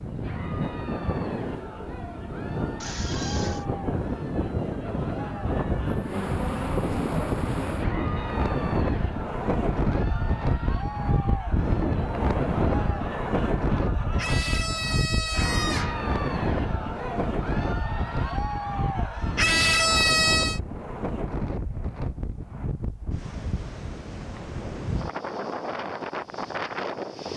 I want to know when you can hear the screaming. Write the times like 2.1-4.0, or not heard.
2.8-3.6, 14.2-16.0, 19.4-20.6.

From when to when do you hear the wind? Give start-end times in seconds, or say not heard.
0.0-27.3.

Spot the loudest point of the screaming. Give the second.
20 s.